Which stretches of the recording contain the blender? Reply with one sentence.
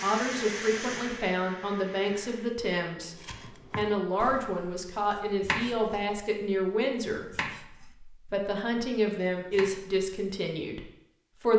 You can hear the blender from 0.0 to 2.5 s.